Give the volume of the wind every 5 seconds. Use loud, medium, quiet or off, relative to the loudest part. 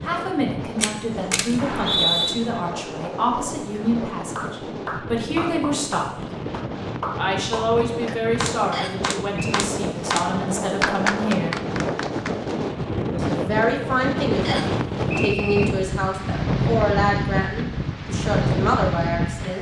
medium, medium, loud, loud.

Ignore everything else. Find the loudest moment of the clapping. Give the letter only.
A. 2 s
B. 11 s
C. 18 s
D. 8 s
B.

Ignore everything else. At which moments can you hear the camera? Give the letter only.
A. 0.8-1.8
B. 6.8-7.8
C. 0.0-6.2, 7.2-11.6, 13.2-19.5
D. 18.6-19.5
A.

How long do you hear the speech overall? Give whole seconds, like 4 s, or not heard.
17 s.